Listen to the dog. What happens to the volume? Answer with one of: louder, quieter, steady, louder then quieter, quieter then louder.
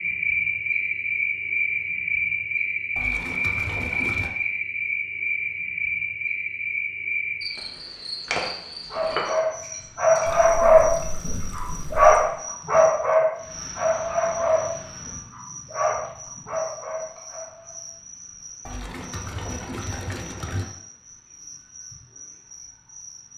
quieter.